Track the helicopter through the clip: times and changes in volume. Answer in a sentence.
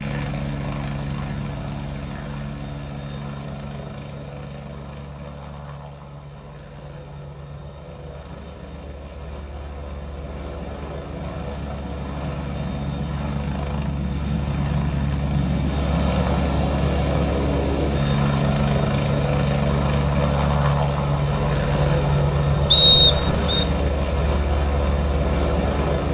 You can hear the helicopter from 0.0 to 26.0 s, getting quieter then louder.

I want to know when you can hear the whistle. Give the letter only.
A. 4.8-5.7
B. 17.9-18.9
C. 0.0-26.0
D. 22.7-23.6
D.